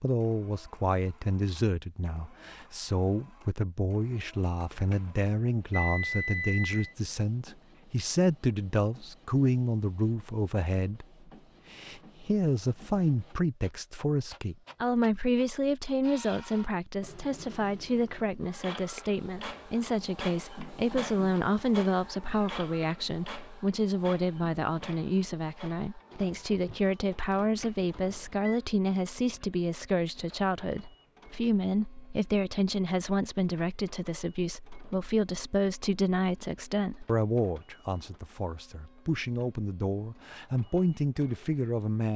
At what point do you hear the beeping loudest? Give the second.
6 s.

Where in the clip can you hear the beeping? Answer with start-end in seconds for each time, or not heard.
4.6-6.8, 27.3-28.6.